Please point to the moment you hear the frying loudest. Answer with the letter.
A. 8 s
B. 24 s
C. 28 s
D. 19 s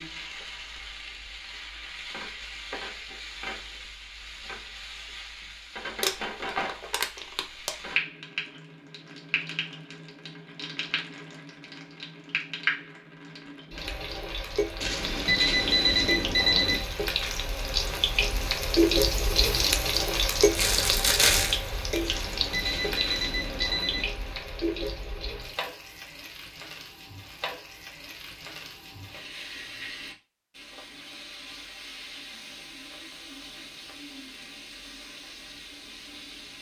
D.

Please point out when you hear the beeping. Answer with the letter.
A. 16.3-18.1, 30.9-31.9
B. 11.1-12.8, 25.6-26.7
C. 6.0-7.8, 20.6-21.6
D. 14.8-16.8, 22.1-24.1
D.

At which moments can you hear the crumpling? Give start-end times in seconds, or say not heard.
6.0-7.8, 20.6-21.6.